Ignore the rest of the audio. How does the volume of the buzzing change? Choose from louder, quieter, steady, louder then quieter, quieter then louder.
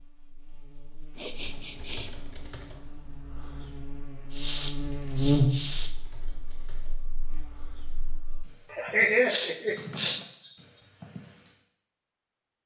louder then quieter.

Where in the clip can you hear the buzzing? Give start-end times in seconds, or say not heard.
0.0-8.4.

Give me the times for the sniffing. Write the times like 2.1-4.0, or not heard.
1.1-2.1, 4.3-6.0, 8.7-10.6.